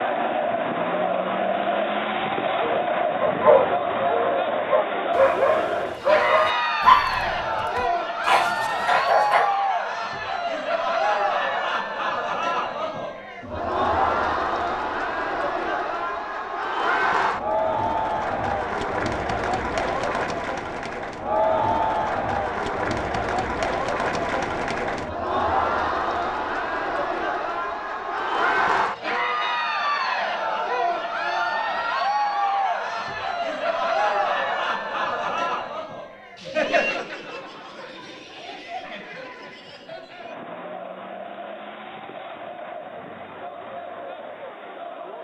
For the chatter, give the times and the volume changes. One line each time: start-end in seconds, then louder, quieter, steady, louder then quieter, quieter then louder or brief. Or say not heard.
0.0-45.2 quieter.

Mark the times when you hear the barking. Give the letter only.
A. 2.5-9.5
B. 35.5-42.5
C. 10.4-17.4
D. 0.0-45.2
A.